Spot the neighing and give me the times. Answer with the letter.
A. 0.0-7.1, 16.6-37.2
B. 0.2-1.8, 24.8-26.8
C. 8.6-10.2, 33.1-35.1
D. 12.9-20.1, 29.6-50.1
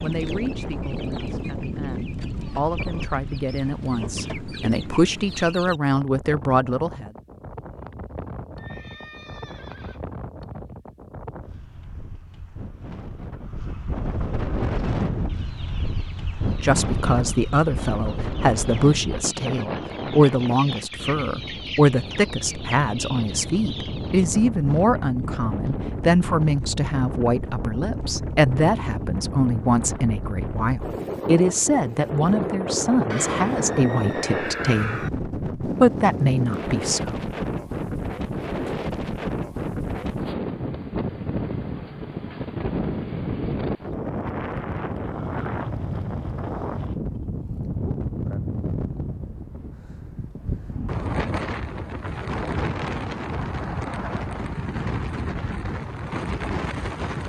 C.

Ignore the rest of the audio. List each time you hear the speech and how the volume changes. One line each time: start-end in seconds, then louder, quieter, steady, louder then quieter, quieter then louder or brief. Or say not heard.
0.0-7.1 louder
16.6-37.2 steady.